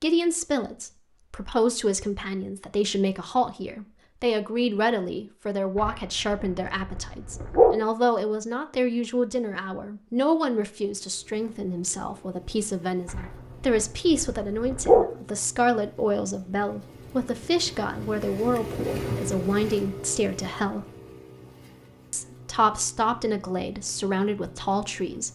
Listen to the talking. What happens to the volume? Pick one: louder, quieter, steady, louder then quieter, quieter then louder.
steady.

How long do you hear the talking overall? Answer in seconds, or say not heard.
24 s.